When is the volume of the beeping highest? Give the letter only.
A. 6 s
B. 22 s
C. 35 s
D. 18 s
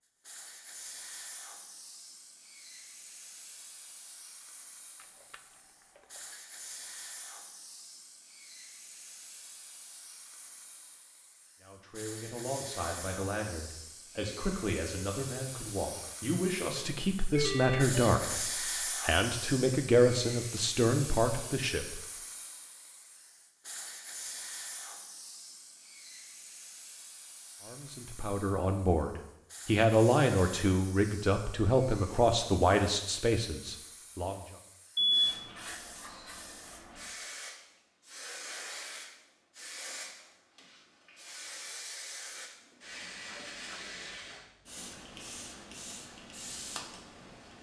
C.